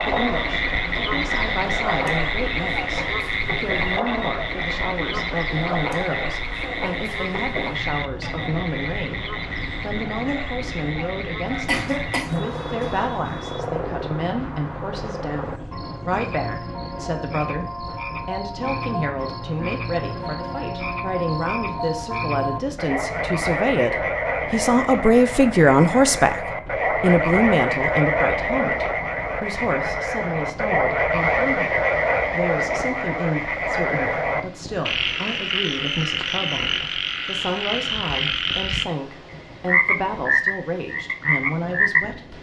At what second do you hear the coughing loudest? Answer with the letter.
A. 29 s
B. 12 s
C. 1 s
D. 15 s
B.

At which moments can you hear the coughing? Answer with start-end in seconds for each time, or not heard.
11.4-13.6.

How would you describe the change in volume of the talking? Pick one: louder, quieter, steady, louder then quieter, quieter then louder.
louder then quieter.